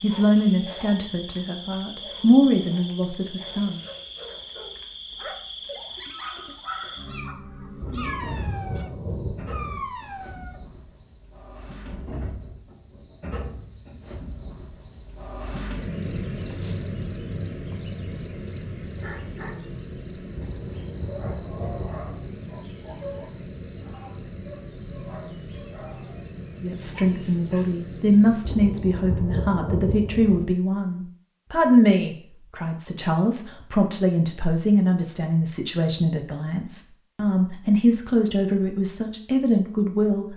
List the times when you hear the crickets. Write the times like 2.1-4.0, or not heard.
0.0-28.4.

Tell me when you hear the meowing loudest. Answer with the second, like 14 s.
8 s.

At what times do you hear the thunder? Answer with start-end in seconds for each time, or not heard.
7.8-9.8, 20.4-22.4, 28.4-30.4.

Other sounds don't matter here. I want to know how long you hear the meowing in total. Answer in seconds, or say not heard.
2 s.